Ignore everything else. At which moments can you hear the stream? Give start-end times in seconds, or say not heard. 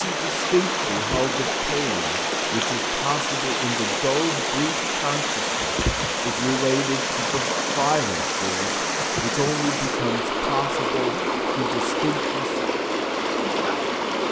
0.0-14.2.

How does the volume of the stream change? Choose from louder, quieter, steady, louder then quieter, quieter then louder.
steady.